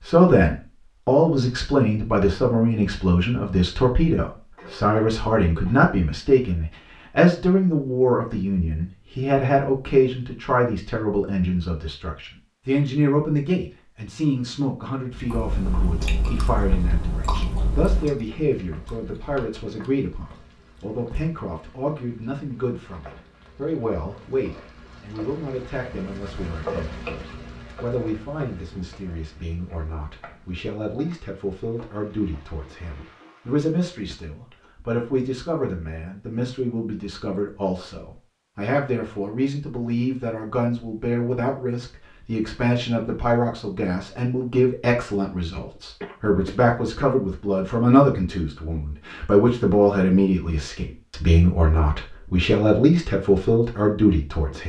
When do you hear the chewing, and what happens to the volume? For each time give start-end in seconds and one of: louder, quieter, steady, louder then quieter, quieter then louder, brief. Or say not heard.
15.1-21.4 quieter.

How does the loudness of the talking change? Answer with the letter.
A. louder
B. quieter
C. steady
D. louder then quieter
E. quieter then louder
E.